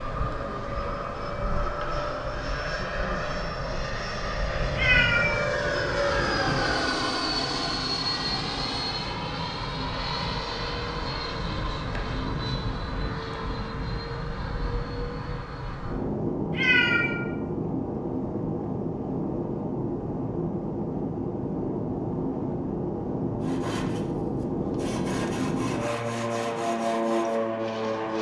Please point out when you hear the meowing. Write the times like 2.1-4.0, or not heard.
4.8-5.5, 16.5-17.1.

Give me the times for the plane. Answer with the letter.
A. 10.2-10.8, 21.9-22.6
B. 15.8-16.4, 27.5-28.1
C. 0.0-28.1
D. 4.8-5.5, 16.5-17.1
C.